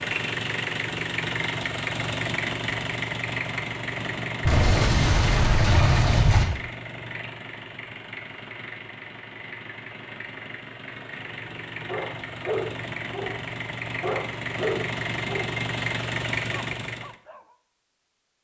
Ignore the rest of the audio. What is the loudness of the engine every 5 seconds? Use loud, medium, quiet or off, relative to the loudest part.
loud, medium, medium, loud.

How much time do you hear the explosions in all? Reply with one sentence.
You can hear the explosions for 2 seconds altogether.